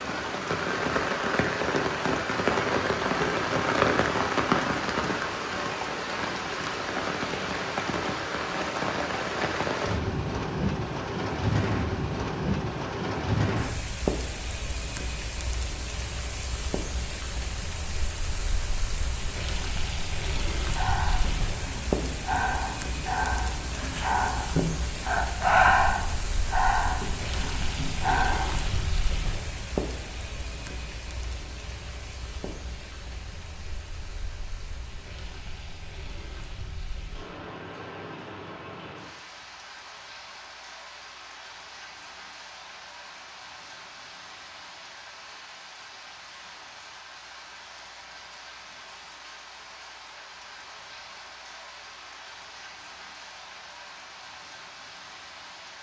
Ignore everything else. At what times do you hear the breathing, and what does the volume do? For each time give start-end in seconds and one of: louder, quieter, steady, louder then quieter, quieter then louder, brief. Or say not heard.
20.6-28.8 louder then quieter.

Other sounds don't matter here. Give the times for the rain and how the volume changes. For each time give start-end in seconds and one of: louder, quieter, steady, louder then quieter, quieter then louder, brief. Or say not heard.
0.0-55.7 quieter.